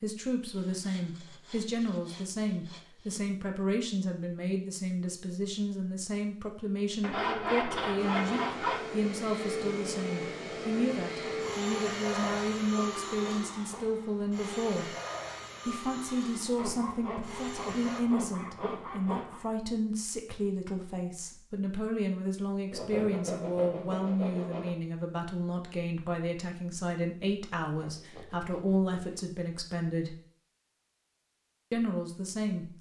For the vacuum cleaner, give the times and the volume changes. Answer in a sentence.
You can hear the vacuum cleaner from 8.0 to 18.0 s, getting quieter.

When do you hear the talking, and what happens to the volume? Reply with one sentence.
The talking can be heard from 0.0 to 14.8 s, at a steady volume; from 15.7 to 30.1 s, at a steady volume; and briefly from 31.7 to 32.6 s.